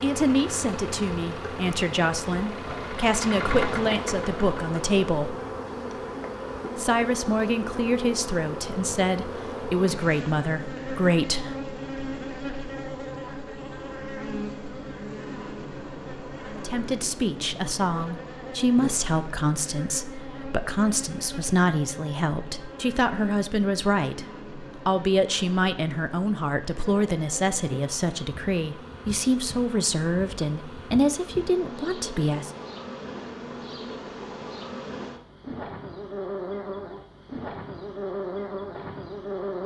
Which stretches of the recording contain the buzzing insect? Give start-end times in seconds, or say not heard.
0.0-39.6.